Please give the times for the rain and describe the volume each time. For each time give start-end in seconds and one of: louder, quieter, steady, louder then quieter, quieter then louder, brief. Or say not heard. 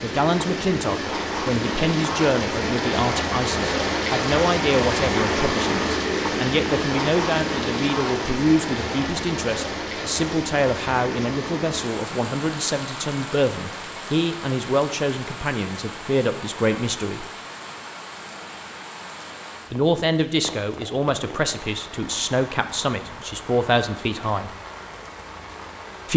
0.0-26.1 quieter.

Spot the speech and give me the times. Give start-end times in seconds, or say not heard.
0.0-17.2, 19.7-24.5.